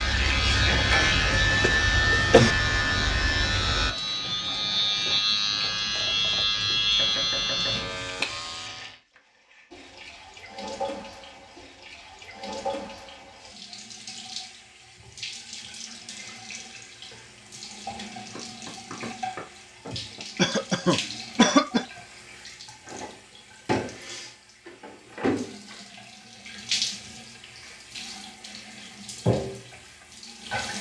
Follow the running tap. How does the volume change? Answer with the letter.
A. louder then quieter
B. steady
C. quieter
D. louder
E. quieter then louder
D.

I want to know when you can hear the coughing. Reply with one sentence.
The coughing can be heard from 1.6 to 2.5 s and from 20.4 to 21.9 s.